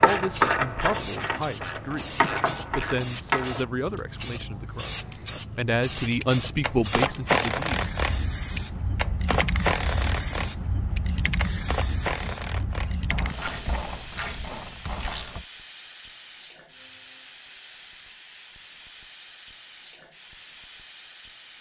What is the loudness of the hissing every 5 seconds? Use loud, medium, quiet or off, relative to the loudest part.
loud, loud, loud, medium, medium.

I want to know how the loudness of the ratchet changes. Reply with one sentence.
The volume of the ratchet goes down.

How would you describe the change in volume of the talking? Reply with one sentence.
The loudness of the talking goes up.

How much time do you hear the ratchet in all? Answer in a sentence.
The ratchet can be heard for 13 seconds in total.